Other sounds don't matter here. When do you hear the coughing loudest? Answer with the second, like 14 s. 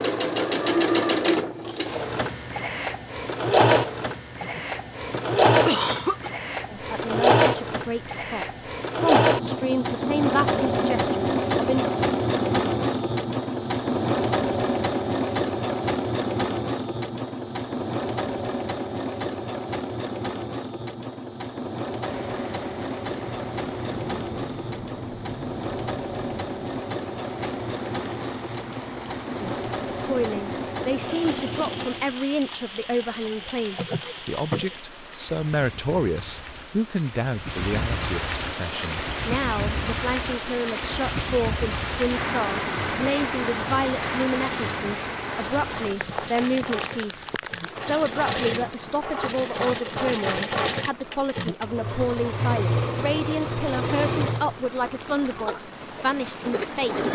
6 s.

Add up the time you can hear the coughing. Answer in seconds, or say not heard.
3 s.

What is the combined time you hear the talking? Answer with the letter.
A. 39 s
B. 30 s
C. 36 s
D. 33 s
D.